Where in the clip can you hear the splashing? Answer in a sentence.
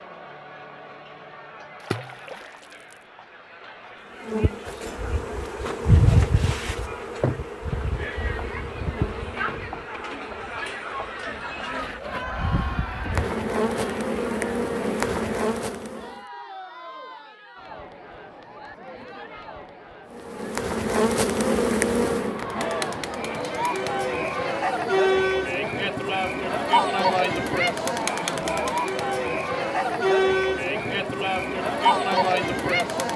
You can hear the splashing from 1.8 to 3.0 s.